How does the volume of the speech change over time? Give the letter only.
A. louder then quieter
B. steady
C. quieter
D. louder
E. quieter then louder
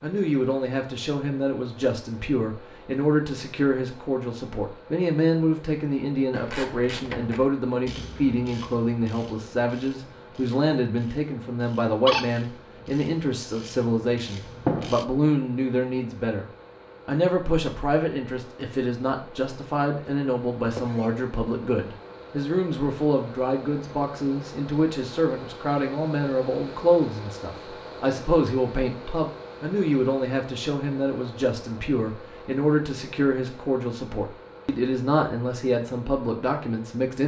B.